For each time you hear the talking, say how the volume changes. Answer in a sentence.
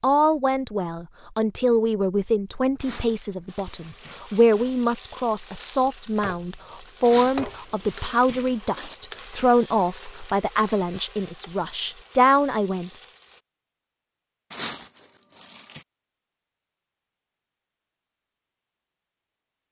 The talking can be heard from 0.0 to 13.0 s, at a steady volume.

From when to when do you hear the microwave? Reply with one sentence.
The microwave can't be heard in this clip.